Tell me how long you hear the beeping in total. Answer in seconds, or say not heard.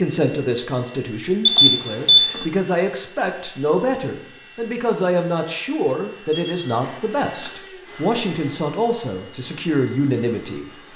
2 s.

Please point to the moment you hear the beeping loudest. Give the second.
2 s.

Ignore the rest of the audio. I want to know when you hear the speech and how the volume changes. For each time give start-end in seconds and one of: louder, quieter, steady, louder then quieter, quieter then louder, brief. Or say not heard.
0.0-10.7 steady.